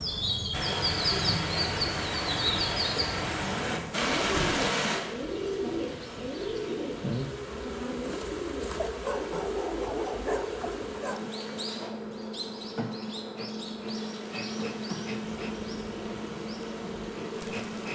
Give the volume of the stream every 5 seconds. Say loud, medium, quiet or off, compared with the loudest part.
loud, quiet, quiet, quiet.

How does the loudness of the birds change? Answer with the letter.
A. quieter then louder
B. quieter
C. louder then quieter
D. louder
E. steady
B.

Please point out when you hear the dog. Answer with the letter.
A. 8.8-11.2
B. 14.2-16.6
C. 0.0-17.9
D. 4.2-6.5
A.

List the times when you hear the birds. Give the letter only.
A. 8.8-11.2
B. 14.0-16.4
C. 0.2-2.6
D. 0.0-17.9
D.